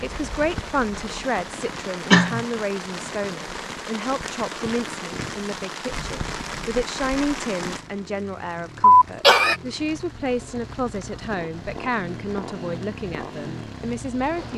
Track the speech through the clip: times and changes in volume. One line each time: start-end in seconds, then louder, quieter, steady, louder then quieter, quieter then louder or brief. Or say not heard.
0.0-14.5 steady.